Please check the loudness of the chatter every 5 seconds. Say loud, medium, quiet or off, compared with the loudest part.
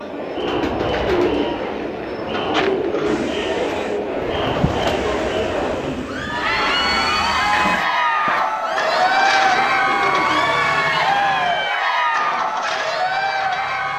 medium, loud, loud.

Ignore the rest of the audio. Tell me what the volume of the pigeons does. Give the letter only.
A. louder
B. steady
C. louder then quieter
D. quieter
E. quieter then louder
D.